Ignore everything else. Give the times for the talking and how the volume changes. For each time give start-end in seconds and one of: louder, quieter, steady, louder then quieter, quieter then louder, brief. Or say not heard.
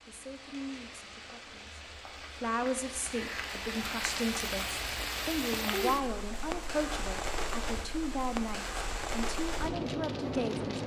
0.0-10.8 louder.